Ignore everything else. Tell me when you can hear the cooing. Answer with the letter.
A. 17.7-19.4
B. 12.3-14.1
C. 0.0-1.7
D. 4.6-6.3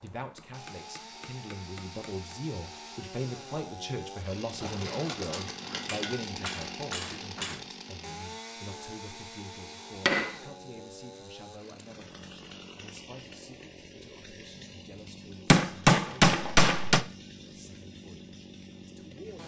D.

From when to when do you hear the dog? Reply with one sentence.
You can't hear the dog here.